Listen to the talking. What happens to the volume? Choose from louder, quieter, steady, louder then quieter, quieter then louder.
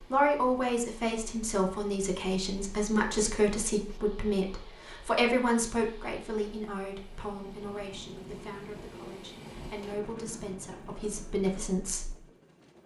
quieter then louder.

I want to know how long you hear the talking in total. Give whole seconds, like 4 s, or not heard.
12 s.